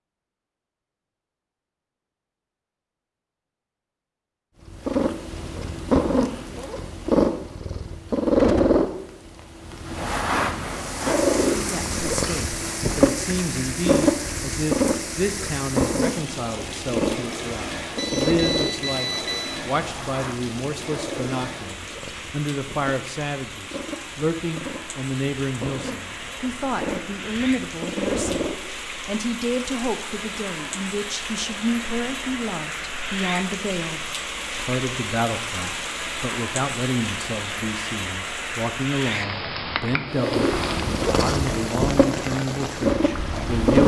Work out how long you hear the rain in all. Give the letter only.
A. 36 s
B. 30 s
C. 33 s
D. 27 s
C.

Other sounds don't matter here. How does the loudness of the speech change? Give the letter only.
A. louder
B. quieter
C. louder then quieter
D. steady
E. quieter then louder
D.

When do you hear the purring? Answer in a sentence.
You can hear the purring from 4.7 to 28.6 s and from 40.1 to 43.8 s.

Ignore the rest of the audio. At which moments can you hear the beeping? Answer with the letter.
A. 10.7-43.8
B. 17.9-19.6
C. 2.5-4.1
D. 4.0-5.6
B.